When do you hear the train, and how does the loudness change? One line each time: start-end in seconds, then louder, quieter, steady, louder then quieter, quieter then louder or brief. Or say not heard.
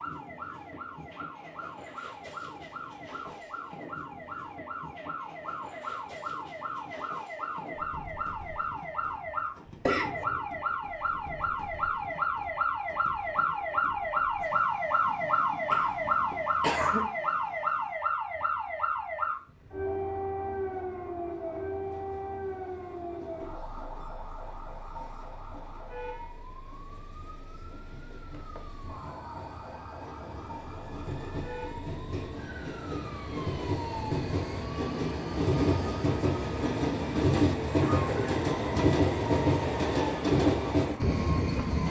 0.0-41.8 quieter then louder.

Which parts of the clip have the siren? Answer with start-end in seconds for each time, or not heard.
0.0-41.8.